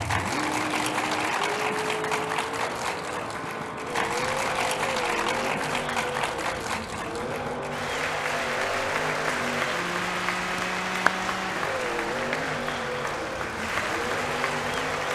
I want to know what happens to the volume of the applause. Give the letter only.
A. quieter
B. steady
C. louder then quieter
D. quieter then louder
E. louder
B.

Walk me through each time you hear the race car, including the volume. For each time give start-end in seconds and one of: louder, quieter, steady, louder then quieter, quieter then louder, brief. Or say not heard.
0.0-15.0 steady.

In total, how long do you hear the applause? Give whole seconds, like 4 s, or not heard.
15 s.